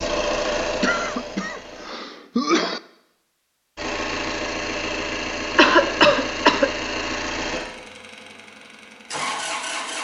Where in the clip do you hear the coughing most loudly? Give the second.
6 s.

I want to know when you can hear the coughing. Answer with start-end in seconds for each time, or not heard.
0.8-2.8, 5.5-6.7.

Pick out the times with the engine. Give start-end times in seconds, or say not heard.
0.0-1.9, 3.8-9.9.